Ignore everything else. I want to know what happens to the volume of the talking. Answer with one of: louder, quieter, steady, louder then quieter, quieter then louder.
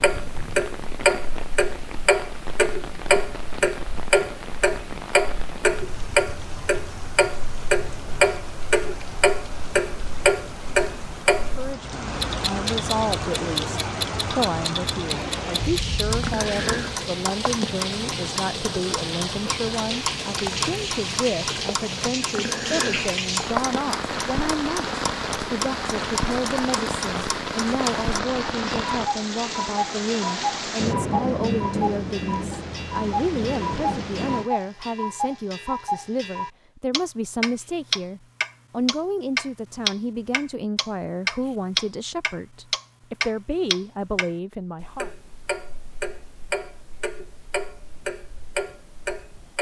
steady.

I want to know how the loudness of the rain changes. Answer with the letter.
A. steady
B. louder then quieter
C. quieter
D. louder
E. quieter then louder
D.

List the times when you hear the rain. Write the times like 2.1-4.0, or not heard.
0.0-34.5.